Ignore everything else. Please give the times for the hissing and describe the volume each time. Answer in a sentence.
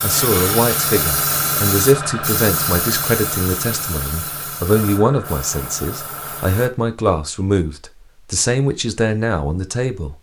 You can hear the hissing from 0.0 to 6.7 s, getting quieter.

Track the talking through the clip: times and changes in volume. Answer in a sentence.
The talking can be heard from 0.0 to 10.1 s, at a steady volume.